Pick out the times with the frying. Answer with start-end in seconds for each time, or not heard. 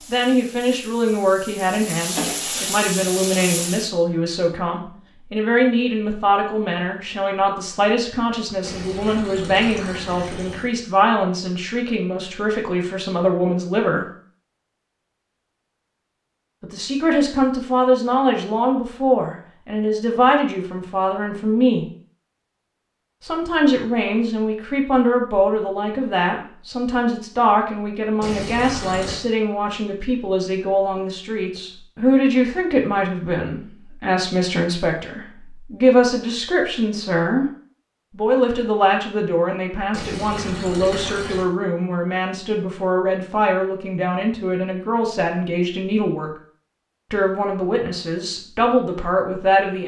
0.0-3.9.